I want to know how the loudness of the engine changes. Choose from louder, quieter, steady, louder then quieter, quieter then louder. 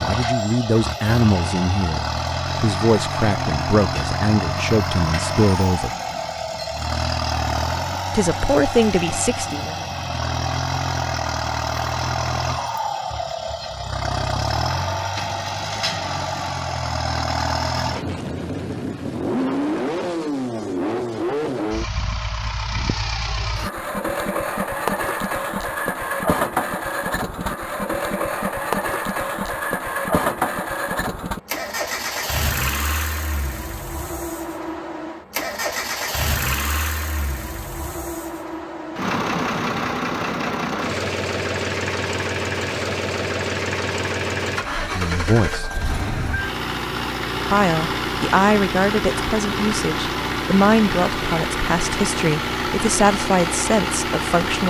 steady.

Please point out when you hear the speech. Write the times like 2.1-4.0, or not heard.
0.0-6.0, 8.1-9.8, 44.8-45.8, 47.5-54.6.